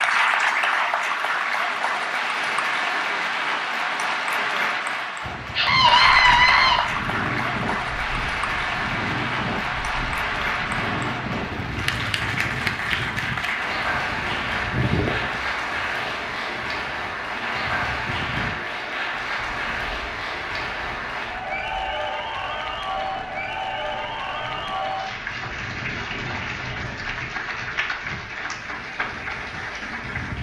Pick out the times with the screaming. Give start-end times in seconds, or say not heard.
5.5-6.8.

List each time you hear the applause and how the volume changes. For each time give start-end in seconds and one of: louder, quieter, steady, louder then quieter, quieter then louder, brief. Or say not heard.
0.0-30.3 quieter.